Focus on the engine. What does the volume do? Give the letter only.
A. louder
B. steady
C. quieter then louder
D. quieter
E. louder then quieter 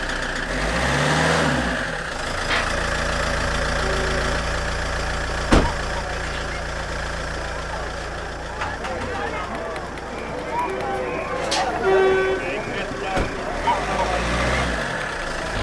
C.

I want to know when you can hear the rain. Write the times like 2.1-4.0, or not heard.
not heard.